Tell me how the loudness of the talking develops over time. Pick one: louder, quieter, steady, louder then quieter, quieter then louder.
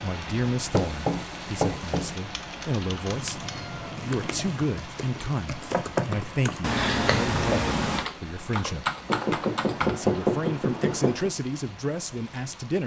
steady.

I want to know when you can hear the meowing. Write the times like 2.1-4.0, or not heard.
3.0-4.5, 6.6-8.1.